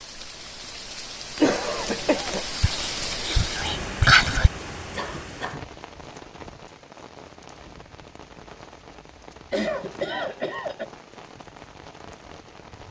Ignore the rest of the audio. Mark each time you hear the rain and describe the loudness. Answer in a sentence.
You can hear the rain from 0.0 to 12.8 s, getting quieter.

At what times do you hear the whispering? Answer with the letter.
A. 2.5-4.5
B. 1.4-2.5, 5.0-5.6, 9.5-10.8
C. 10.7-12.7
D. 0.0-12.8
A.